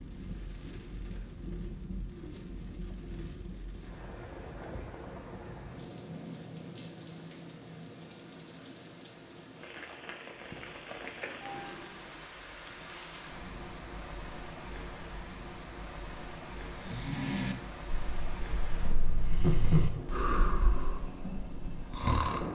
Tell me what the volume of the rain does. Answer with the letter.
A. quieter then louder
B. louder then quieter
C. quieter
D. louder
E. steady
E.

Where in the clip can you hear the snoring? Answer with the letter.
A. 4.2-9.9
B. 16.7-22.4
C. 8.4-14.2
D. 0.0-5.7
B.